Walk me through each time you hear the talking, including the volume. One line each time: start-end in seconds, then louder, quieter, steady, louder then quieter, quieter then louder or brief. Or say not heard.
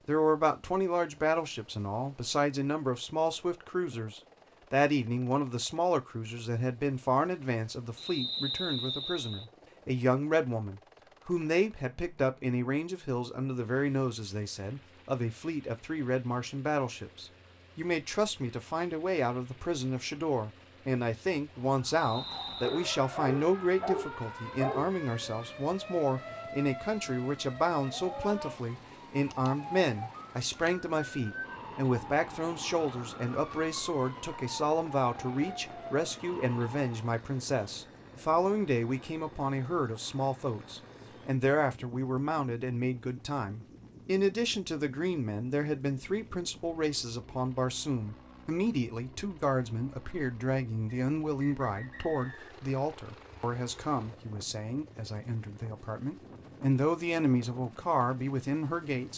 0.1-59.1 steady.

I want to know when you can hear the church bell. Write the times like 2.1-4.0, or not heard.
not heard.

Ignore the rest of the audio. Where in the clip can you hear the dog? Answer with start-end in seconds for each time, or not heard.
22.6-24.9.